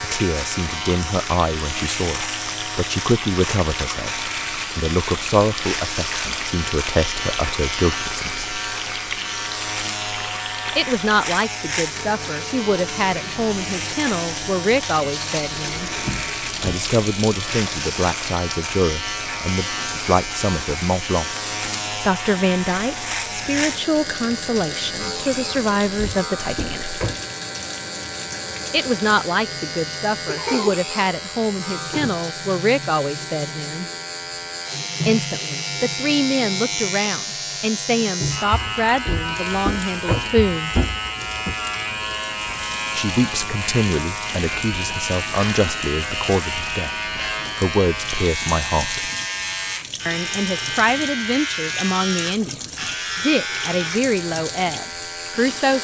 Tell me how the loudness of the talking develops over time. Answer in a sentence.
The volume of the talking stays about the same.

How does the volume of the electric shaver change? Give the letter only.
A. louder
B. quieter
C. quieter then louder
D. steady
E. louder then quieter
D.